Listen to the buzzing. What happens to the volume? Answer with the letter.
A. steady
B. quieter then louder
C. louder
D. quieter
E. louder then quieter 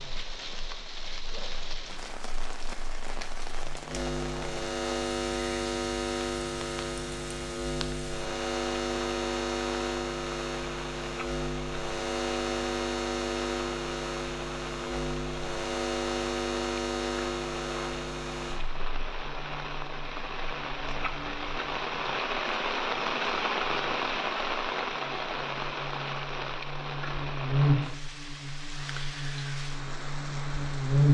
B.